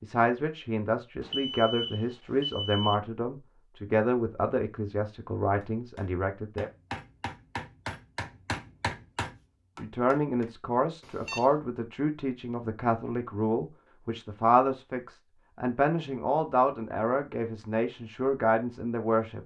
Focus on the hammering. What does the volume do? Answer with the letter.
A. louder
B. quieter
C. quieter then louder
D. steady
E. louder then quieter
E.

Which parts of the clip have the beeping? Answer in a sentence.
The beeping can be heard from 1.2 to 3.0 s and from 11.0 to 11.5 s.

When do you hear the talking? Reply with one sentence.
The talking can be heard from 0.0 to 6.7 s and from 9.8 to 19.4 s.